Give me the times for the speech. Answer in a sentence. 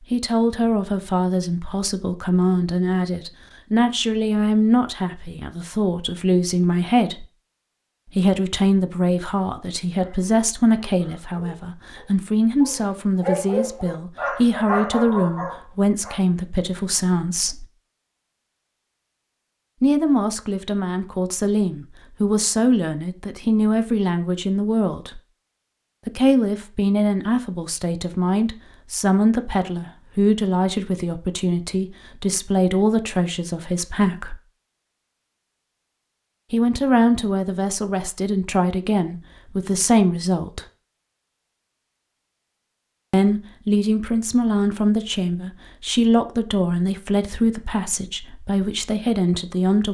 You can hear the speech from 0.1 to 7.2 s, from 8.2 to 17.6 s, from 19.8 to 25.2 s, from 26.1 to 34.4 s, from 36.5 to 40.6 s and from 43.1 to 49.9 s.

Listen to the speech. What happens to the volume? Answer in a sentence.
The loudness of the speech stays about the same.